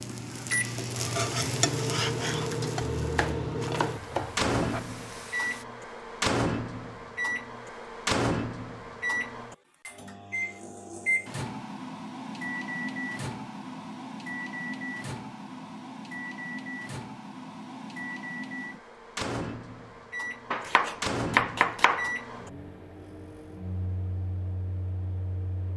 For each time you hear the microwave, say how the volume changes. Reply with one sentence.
You can hear the microwave from 0.0 to 25.7 s, getting quieter.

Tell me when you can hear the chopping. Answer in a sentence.
You can hear the chopping from 3.0 to 4.8 s and from 20.5 to 22.1 s.